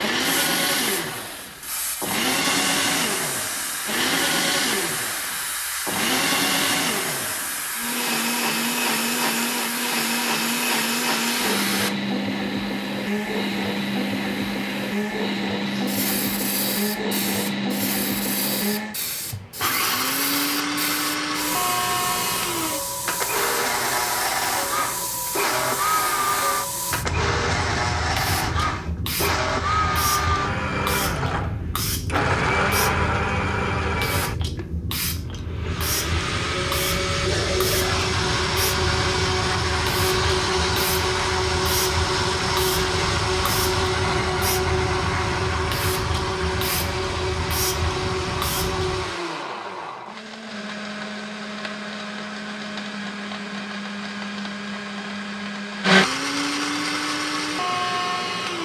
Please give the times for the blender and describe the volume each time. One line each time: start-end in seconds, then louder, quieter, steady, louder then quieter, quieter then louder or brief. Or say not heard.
0.0-58.6 steady.